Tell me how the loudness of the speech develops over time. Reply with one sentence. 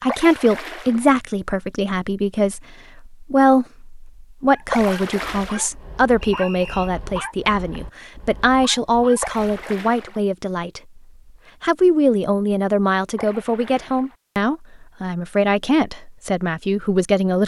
The loudness of the speech stays about the same.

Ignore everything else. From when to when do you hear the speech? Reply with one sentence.
The speech can be heard from 0.0 to 10.8 s and from 11.6 to 17.4 s.